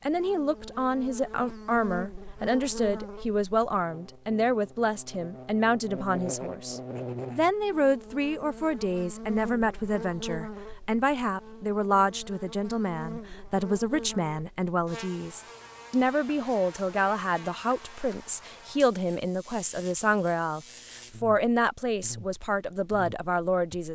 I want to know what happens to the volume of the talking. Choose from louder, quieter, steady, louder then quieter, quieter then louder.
steady.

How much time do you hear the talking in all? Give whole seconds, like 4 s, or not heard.
24 s.